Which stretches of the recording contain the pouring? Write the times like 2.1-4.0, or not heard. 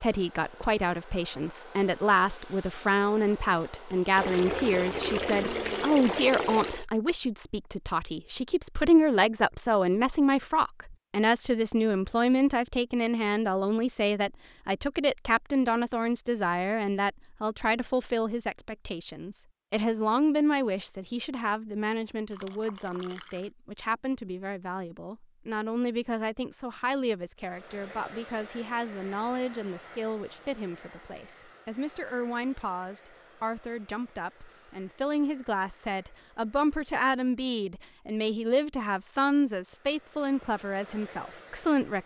4.2-6.8, 22.3-23.5.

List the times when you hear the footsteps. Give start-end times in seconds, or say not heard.
not heard.